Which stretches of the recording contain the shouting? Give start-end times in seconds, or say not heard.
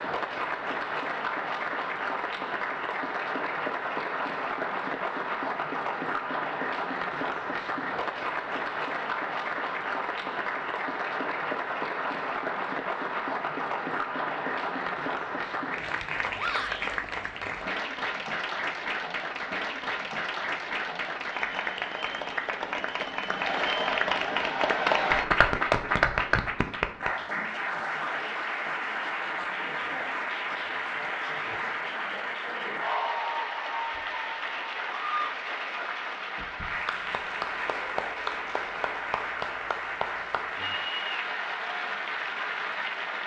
16.4-16.9.